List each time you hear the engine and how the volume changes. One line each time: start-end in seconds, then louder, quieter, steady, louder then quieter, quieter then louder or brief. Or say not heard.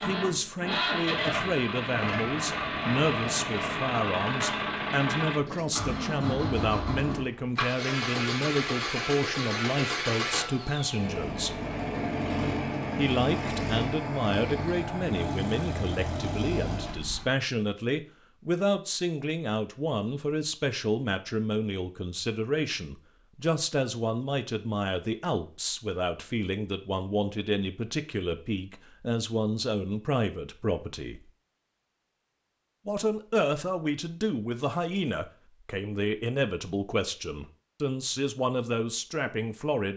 0.0-17.3 steady.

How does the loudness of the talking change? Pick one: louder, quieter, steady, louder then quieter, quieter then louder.
steady.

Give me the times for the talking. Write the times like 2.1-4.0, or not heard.
0.0-11.6, 12.9-31.2, 32.9-39.9.